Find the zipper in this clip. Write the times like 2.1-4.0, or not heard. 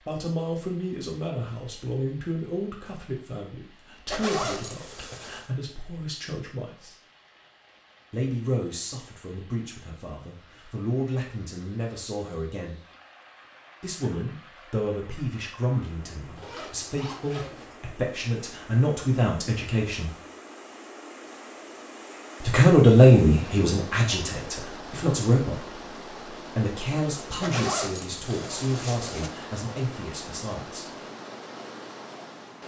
4.0-5.5, 16.4-17.8, 27.4-29.3.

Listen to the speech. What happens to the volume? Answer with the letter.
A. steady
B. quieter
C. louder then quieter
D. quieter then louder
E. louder
C.